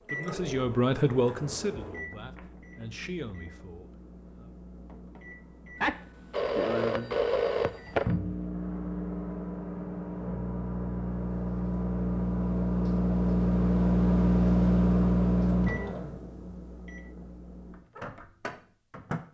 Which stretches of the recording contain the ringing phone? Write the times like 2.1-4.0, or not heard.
5.8-8.2.